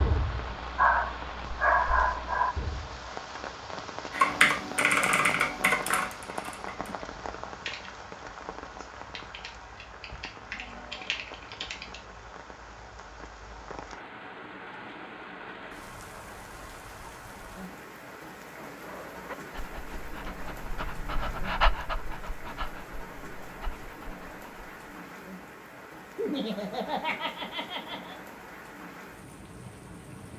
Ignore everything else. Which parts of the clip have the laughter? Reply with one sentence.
The laughter can be heard from 26.1 to 28.1 s.